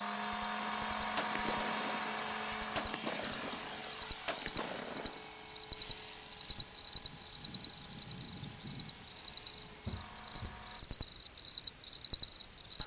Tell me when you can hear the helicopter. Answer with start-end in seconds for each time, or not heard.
0.0-10.8.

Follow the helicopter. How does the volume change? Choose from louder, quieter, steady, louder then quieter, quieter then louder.
quieter.